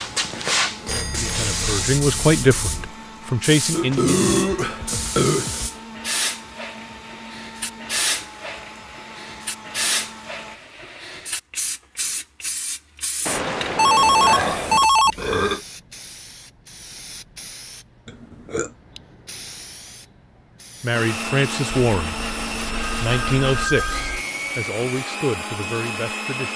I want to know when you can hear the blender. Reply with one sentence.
The blender can be heard from 0.0 to 10.6 s and from 20.9 to 26.5 s.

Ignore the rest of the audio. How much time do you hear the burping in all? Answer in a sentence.
The burping can be heard for 4 seconds in total.